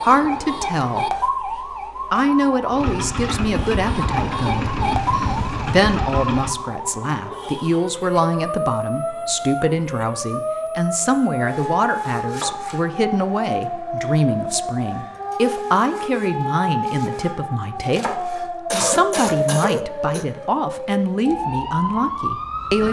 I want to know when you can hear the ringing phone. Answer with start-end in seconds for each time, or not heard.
not heard.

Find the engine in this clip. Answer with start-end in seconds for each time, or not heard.
2.7-6.5.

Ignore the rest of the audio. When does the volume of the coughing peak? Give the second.
19 s.